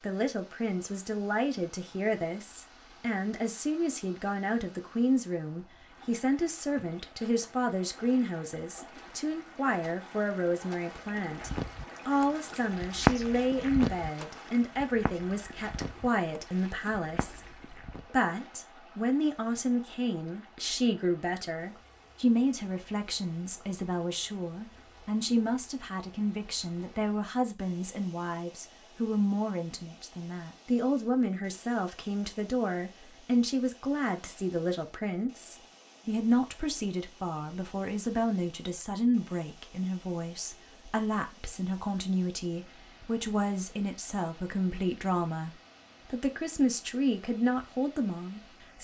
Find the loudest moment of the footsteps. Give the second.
13 s.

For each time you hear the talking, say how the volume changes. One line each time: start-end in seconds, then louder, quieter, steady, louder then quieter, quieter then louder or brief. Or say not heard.
0.0-48.7 steady.